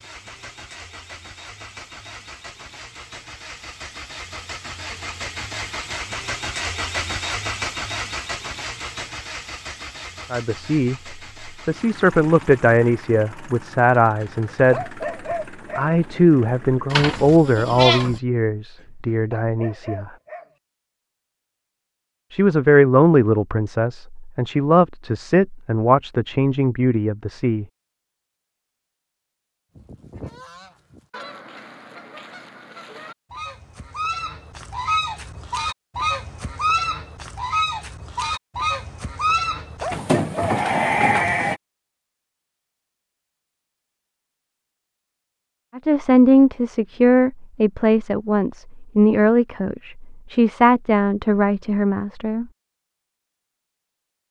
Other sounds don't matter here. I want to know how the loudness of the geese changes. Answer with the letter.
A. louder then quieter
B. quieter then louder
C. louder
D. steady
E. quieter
C.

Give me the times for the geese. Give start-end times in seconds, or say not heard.
29.8-40.0.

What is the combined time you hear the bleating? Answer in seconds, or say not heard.
3 s.